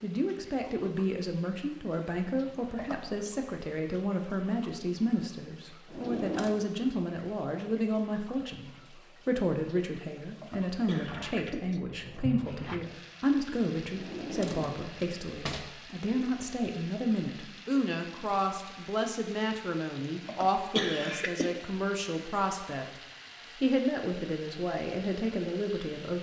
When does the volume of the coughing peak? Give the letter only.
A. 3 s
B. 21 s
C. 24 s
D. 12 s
B.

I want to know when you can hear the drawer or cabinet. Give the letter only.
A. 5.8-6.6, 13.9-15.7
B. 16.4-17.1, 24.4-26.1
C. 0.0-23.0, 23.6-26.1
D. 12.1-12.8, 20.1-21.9
A.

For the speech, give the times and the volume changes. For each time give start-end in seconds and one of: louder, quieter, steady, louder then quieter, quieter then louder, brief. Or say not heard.
0.0-23.0 steady
23.6-26.1 brief.